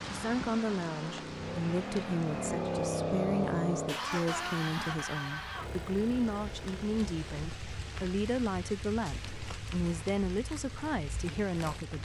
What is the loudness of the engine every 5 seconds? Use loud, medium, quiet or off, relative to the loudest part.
loud, medium, quiet.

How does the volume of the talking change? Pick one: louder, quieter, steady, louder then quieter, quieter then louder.
steady.